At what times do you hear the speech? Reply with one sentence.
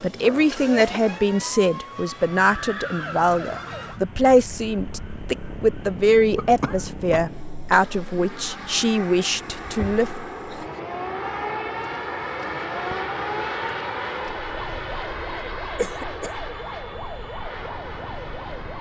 The speech can be heard from 0.0 to 10.1 s.